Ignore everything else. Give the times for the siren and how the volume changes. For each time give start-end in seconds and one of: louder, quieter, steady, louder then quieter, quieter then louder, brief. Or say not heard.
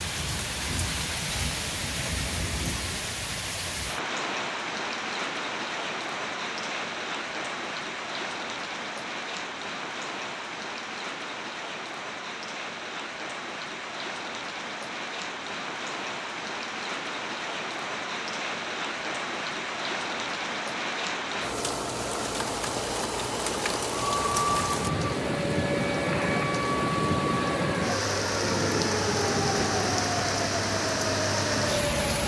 23.9-32.2 steady.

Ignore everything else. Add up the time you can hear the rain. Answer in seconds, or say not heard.
32 s.